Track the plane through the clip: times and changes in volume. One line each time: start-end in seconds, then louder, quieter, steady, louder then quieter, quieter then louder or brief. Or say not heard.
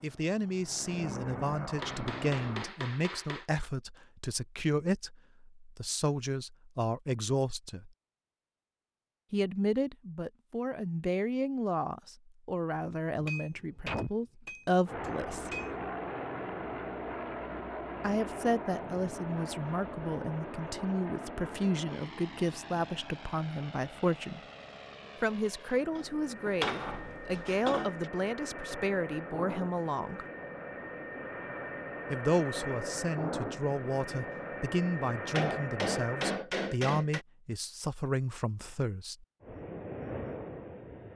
0.0-2.7 brief
14.8-36.4 quieter then louder
39.4-41.1 brief.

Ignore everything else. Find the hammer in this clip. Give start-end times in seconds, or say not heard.
1.8-3.5, 13.2-15.8, 25.9-28.1, 35.3-37.2.